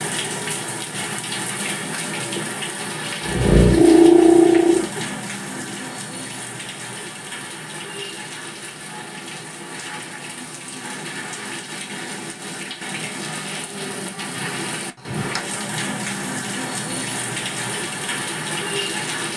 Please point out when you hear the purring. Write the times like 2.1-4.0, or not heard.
3.2-5.8.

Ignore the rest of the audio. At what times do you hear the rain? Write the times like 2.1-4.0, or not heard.
0.0-19.3.